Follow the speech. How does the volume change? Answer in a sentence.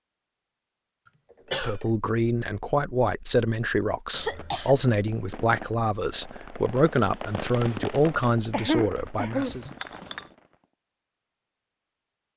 The loudness of the speech stays about the same.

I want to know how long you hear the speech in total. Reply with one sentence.
You can hear the speech for 8 seconds altogether.